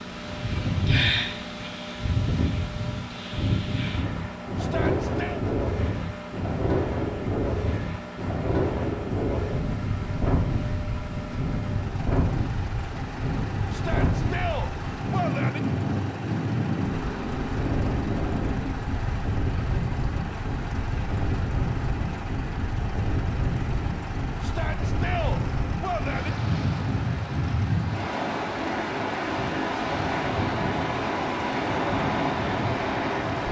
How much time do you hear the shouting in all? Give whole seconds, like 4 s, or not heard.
5 s.